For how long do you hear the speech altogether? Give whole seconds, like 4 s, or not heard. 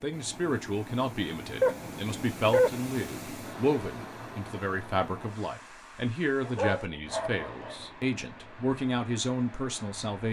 10 s.